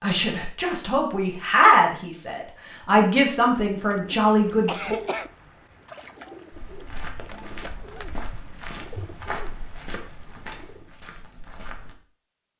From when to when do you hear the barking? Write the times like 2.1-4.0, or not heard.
not heard.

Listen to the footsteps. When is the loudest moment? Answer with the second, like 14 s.
9 s.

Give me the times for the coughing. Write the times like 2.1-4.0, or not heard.
4.1-5.3.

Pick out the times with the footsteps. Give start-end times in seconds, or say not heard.
6.5-11.9.